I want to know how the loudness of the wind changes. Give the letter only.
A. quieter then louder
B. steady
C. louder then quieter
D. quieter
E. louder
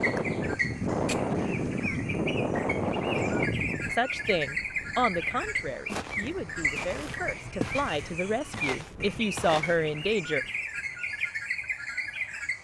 D.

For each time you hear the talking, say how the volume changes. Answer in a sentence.
You can hear the talking from 3.9 to 10.4 s, getting quieter then louder.